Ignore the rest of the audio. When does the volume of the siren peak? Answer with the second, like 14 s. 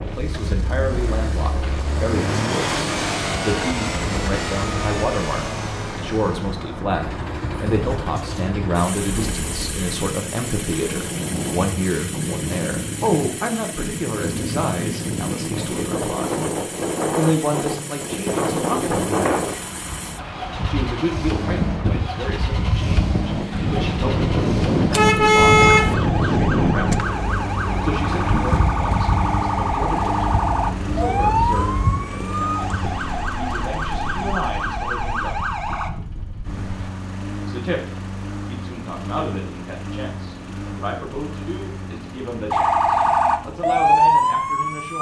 44 s.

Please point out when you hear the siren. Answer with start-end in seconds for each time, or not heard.
25.6-35.9, 42.5-44.9.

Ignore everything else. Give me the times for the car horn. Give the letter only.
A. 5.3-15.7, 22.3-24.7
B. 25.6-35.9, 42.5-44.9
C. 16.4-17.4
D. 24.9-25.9
D.